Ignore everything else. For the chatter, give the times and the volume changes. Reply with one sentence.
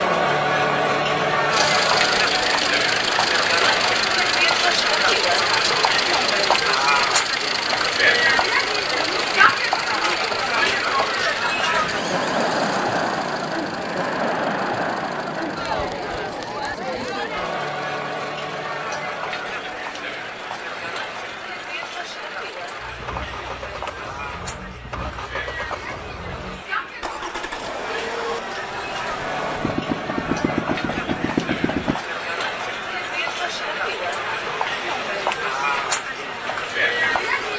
You can hear the chatter from 0.0 to 37.5 s, getting quieter then louder.